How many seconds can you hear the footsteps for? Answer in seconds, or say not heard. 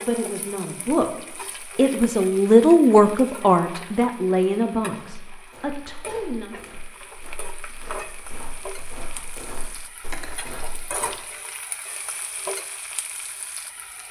6 s.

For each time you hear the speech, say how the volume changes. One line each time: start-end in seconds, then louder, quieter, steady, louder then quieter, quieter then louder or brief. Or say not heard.
0.0-6.5 louder then quieter.